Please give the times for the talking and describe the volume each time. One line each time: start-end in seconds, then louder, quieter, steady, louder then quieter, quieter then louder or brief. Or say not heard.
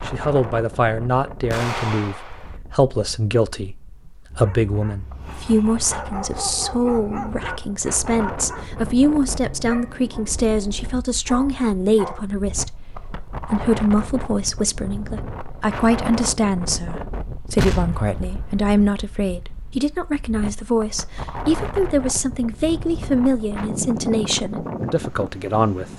0.1-25.9 steady.